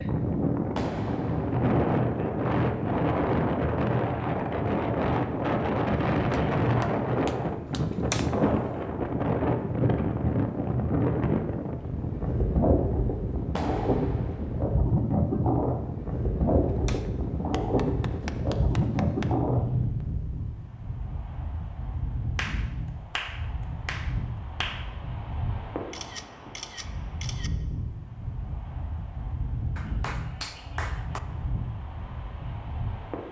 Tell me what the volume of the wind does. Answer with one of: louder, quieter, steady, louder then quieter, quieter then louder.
quieter.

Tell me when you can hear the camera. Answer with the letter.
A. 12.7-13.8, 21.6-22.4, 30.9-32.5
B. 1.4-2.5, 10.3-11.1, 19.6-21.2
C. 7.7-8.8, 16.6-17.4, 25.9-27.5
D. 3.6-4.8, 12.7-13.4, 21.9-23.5
C.